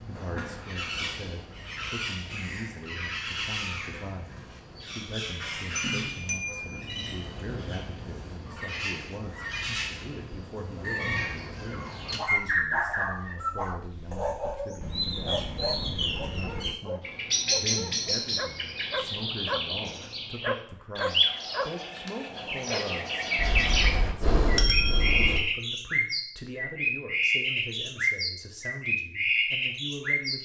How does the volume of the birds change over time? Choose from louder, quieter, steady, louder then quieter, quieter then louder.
louder.